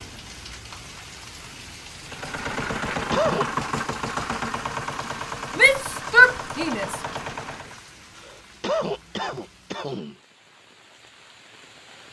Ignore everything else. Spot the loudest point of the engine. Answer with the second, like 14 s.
3 s.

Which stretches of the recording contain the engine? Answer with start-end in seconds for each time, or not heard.
2.0-7.8.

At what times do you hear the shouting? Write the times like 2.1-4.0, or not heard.
5.5-7.0.